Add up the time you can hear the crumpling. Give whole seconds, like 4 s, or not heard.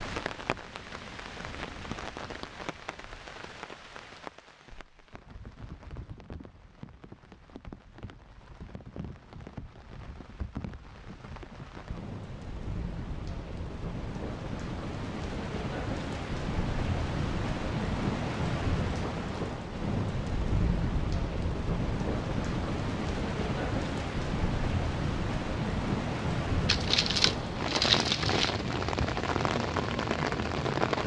2 s.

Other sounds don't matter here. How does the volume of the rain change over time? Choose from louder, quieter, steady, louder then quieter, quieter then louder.
louder.